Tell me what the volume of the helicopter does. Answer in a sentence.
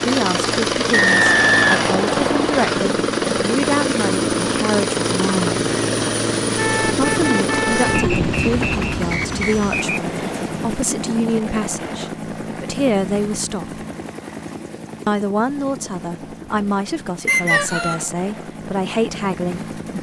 The volume of the helicopter goes down.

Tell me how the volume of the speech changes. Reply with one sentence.
The loudness of the speech stays about the same.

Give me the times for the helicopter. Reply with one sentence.
The helicopter can be heard from 0.0 to 19.9 s.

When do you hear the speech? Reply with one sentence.
The speech can be heard from 0.1 to 5.6 s, from 7.0 to 13.8 s and from 15.1 to 19.9 s.